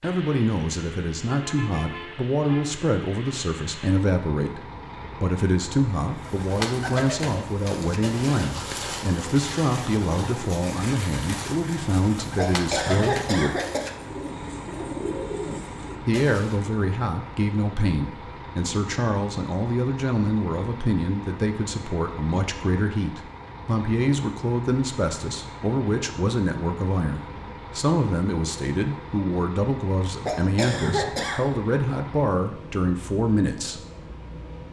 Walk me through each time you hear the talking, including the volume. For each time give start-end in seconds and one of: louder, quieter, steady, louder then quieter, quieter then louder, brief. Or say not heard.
0.0-13.6 steady
16.0-33.8 steady.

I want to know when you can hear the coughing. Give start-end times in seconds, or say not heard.
12.3-13.9, 30.2-31.4.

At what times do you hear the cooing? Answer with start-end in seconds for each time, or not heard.
6.2-16.6.